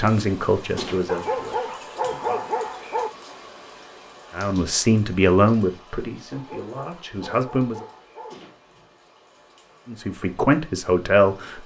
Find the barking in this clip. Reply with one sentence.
The barking can be heard from 1.1 to 3.1 s and from 6.3 to 8.3 s.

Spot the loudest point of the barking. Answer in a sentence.
The volume of the barking peaks at 2 seconds.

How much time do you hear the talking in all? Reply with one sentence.
The talking can be heard for 8 seconds in total.